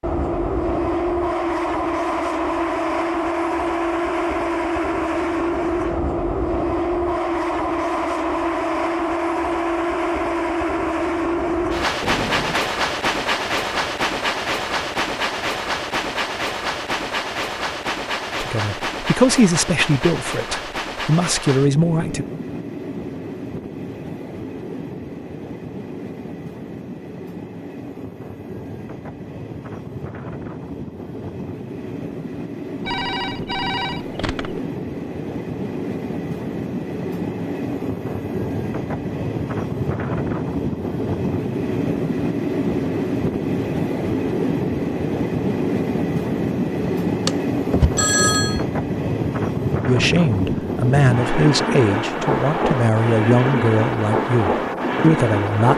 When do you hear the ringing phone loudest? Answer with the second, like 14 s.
48 s.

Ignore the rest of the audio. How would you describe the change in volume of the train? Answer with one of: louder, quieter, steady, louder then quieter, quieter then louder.
quieter then louder.